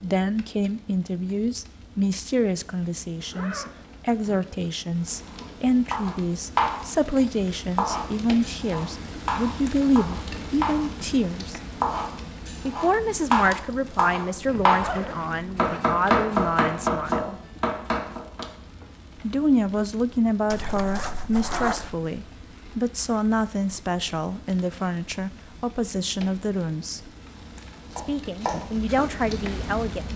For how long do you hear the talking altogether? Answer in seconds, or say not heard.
26 s.